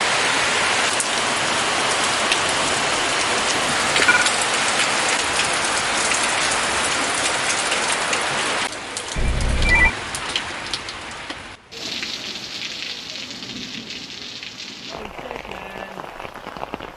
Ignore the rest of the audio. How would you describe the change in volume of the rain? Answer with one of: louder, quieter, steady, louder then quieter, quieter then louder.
quieter.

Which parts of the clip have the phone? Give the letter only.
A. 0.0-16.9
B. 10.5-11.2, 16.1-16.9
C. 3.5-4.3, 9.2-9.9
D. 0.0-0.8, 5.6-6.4
C.